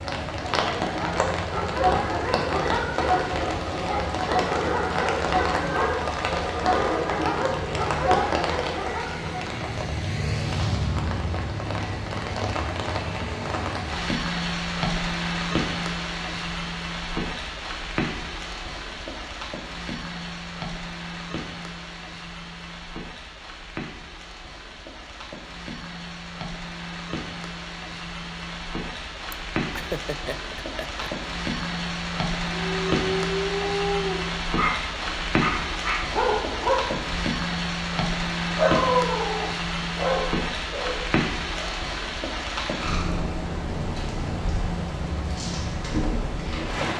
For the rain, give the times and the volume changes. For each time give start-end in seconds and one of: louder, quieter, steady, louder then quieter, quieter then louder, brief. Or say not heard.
0.0-46.9 quieter then louder.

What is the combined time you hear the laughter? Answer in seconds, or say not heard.
2 s.